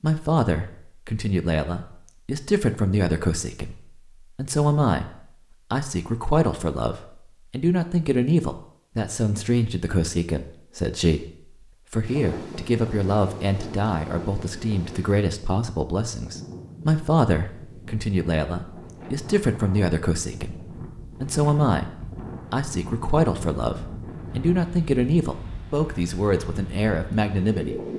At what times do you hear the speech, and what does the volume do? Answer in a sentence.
You can hear the speech from 0.0 to 27.9 s, at a steady volume.